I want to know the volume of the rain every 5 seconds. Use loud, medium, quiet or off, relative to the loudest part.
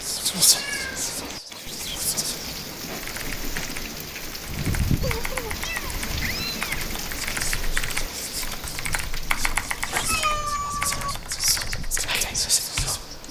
loud, loud, medium.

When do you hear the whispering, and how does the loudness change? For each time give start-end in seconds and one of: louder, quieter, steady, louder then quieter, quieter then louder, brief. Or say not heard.
0.0-2.7 brief
7.2-13.2 louder.